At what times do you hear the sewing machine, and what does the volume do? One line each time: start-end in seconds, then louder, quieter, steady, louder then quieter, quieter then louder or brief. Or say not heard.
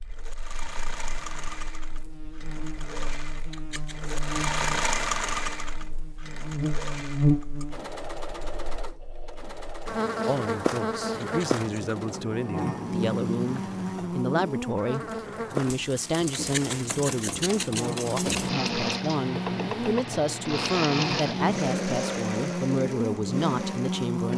0.0-24.3 quieter then louder.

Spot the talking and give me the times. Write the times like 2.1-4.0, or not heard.
10.2-24.3.